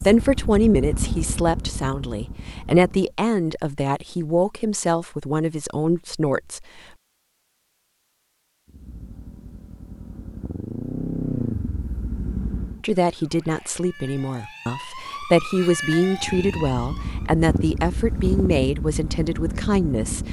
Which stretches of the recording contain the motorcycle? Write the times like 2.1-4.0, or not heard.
0.0-3.1, 8.7-12.8, 16.1-20.2.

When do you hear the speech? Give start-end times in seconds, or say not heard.
0.0-6.7, 12.8-20.2.